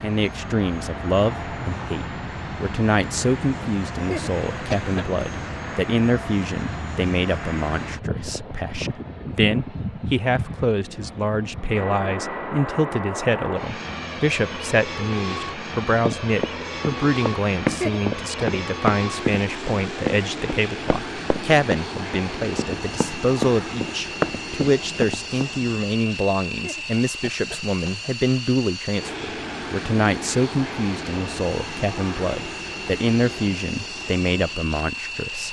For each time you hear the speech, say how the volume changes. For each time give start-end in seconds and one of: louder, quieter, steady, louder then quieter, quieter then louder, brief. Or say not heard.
0.0-35.4 steady.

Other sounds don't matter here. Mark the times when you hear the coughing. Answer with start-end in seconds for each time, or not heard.
4.0-5.0, 17.6-18.4, 26.5-28.1.